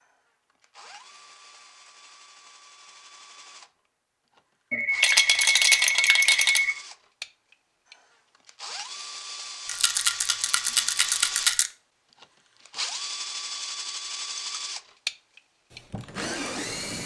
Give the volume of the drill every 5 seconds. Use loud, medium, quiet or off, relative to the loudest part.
quiet, medium, loud, loud.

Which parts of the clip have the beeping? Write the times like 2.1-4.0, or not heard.
4.7-6.8.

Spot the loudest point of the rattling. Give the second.
6 s.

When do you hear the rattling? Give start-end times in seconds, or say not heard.
5.0-6.6, 9.7-11.7.